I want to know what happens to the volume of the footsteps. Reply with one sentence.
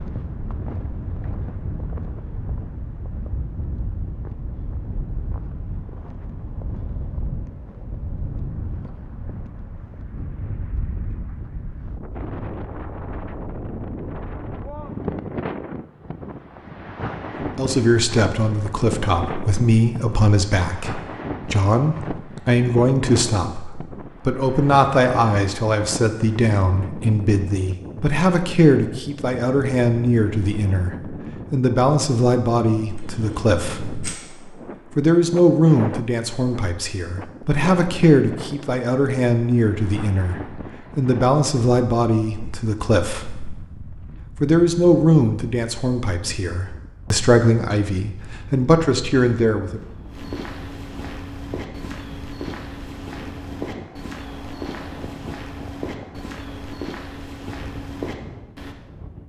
The volume of the footsteps stays about the same.